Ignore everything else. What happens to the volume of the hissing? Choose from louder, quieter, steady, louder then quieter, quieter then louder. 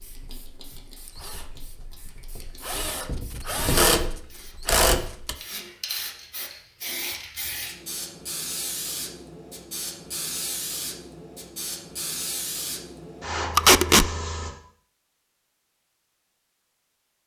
louder.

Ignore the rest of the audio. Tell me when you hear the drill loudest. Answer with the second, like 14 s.
4 s.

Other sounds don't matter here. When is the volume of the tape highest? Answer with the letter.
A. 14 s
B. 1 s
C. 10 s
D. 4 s
A.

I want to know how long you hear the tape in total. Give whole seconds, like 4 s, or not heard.
3 s.